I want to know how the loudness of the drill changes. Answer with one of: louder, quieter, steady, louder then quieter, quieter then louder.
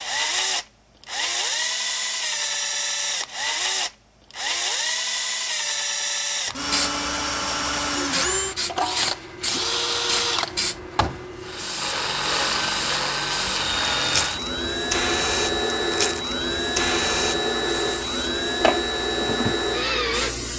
steady.